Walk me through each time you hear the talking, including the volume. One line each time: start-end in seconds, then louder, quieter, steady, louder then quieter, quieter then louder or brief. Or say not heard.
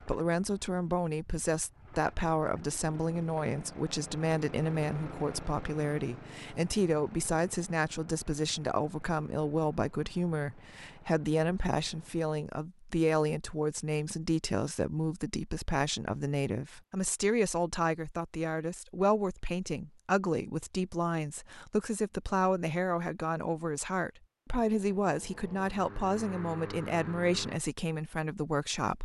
0.0-29.0 steady.